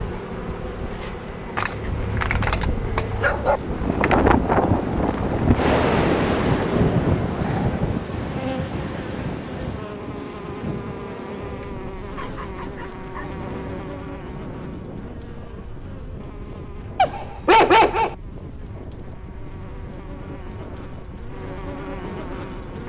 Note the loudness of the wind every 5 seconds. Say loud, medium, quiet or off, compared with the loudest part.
loud, loud, quiet, quiet, quiet.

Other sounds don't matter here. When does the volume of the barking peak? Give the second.
18 s.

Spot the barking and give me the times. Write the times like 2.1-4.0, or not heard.
1.6-3.6, 12.2-13.3, 16.9-18.1.